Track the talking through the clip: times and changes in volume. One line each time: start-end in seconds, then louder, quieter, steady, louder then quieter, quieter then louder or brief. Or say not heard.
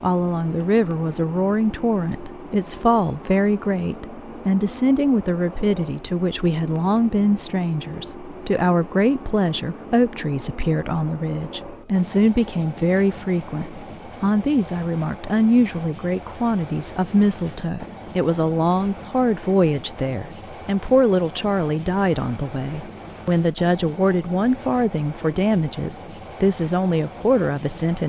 0.0-28.0 steady.